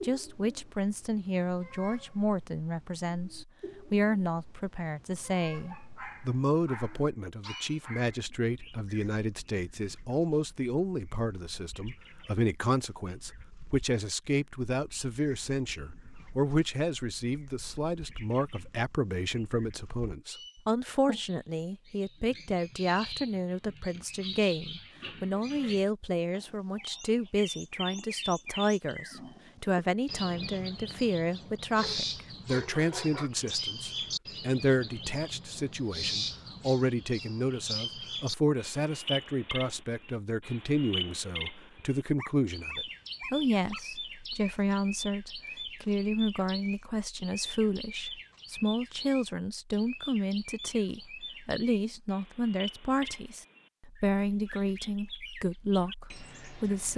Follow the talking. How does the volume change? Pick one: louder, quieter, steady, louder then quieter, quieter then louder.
steady.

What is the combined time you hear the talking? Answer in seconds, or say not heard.
57 s.